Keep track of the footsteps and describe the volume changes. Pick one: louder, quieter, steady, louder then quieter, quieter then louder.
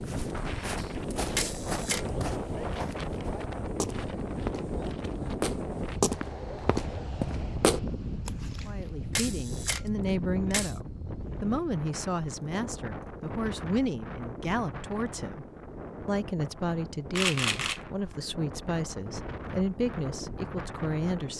louder.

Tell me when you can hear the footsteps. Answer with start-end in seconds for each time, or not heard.
0.1-8.9.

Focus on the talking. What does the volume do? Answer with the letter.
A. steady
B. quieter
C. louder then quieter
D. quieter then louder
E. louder
A.